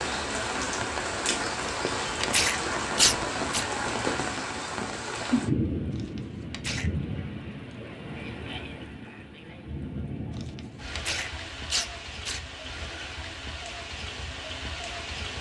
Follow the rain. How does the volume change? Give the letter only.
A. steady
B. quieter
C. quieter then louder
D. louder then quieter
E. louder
B.